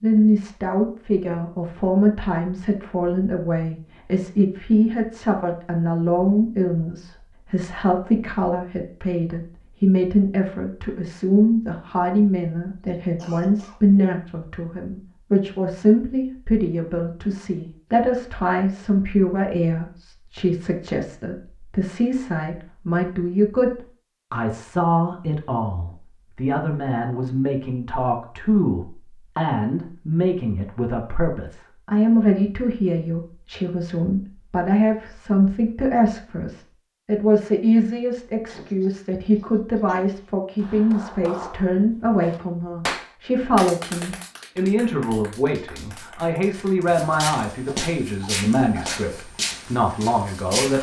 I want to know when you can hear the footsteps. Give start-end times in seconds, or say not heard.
46.5-50.7.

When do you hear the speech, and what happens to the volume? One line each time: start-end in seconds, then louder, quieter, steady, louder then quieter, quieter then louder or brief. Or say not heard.
0.0-50.7 steady.